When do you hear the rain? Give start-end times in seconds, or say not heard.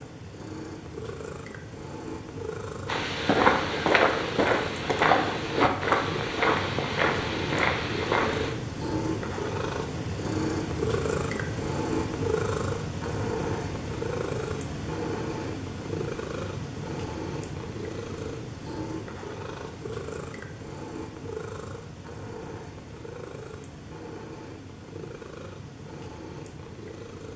not heard.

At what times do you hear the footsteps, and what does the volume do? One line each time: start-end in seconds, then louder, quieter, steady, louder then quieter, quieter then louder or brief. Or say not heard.
2.9-8.5 quieter.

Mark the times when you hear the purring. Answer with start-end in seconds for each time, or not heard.
0.0-27.3.